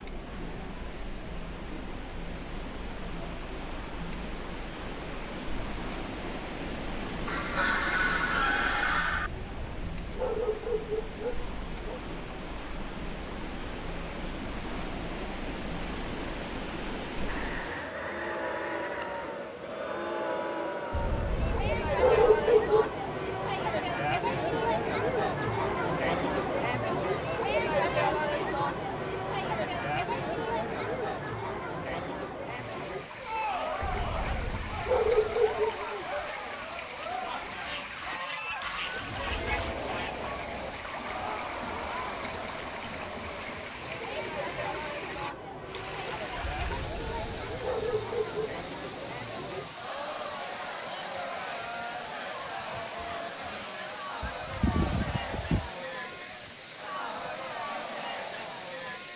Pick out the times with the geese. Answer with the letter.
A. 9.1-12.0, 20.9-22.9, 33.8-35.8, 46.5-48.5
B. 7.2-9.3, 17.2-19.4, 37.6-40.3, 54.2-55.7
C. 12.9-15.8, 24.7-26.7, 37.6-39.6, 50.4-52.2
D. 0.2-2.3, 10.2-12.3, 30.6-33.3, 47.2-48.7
B.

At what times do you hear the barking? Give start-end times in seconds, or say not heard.
9.1-12.0, 20.9-22.9, 33.8-35.8, 46.5-48.5.